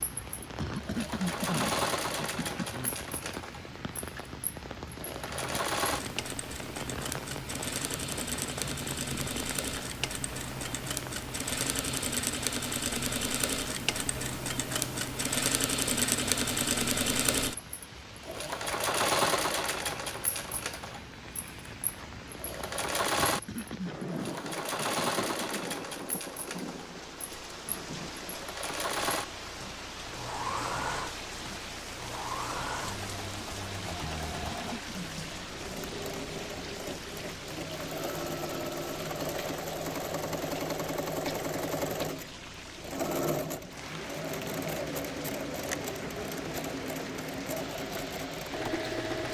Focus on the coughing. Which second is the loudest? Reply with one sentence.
The volume of the coughing peaks at 1 second.